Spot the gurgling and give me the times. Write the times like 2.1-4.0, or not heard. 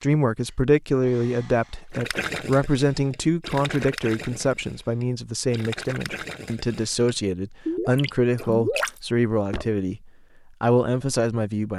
1.9-9.8.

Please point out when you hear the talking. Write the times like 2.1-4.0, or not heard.
0.0-11.7.